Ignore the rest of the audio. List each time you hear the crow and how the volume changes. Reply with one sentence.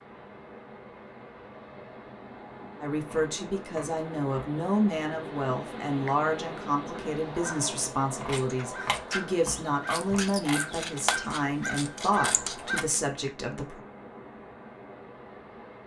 You can hear the crow from 7.1 to 12.8 s, getting louder.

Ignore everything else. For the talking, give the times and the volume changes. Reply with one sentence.
The talking can be heard from 2.8 to 13.8 s, at a steady volume.